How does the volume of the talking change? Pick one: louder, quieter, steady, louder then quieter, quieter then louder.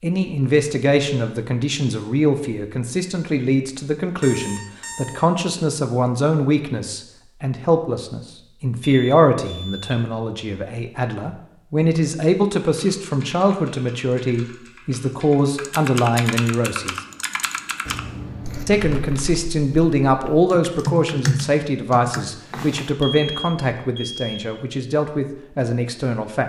steady.